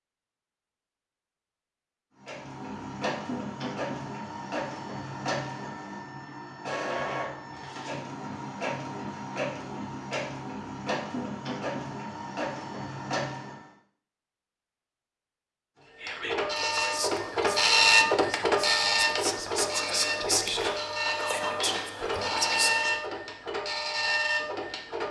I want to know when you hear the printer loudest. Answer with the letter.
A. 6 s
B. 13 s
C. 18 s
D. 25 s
C.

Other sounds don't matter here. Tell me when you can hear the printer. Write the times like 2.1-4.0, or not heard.
2.1-13.7, 16.0-25.0.